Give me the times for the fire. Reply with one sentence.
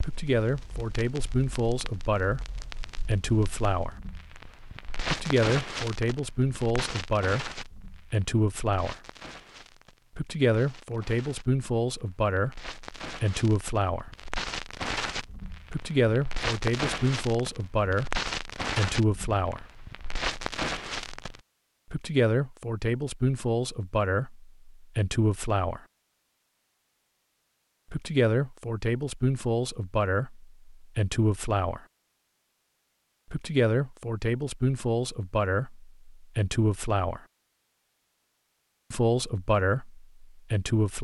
You can hear the fire from 0.0 to 21.4 s.